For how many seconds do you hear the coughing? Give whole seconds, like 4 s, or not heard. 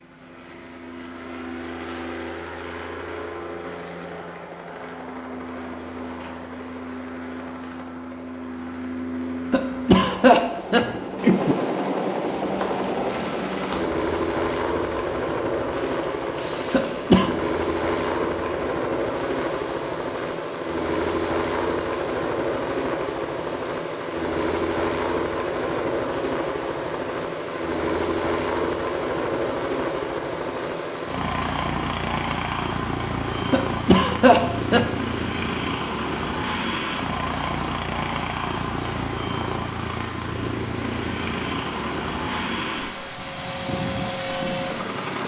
4 s.